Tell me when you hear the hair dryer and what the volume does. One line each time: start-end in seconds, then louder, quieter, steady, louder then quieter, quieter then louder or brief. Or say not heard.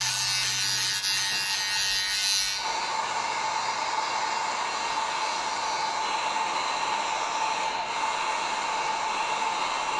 0.0-9.9 louder.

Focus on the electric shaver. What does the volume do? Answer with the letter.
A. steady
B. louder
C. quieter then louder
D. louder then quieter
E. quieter
E.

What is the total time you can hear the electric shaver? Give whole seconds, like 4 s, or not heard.
10 s.